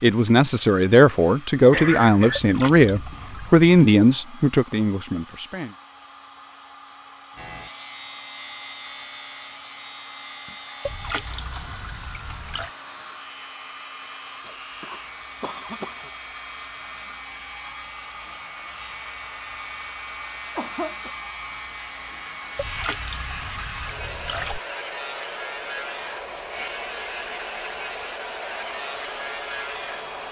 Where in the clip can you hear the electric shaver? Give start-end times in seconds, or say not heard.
7.3-30.2.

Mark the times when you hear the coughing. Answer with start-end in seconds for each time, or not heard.
1.7-2.4, 14.4-16.1, 20.6-21.1.